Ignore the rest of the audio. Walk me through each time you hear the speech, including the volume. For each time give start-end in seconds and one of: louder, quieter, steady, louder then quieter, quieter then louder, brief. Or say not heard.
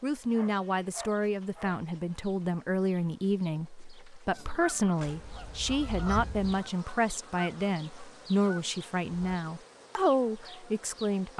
0.0-11.3 steady.